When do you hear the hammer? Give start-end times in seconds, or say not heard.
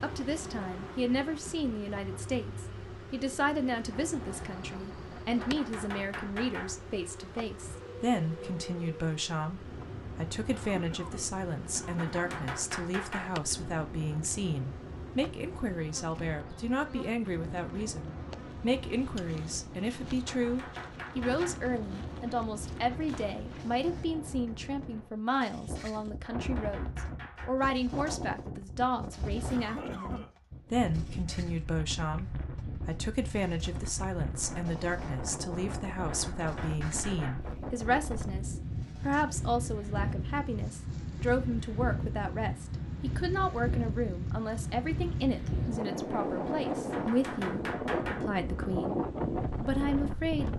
5.4-6.8, 11.9-13.3, 20.2-21.6, 26.2-27.6, 36.0-37.5, 46.9-48.3.